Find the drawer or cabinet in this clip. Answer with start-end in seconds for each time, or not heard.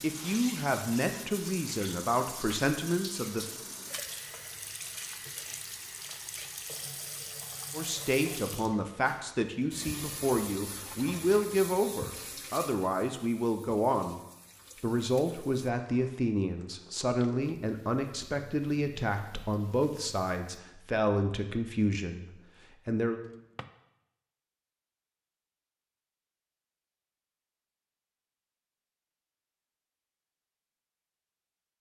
23.2-23.7.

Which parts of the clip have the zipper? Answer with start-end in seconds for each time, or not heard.
not heard.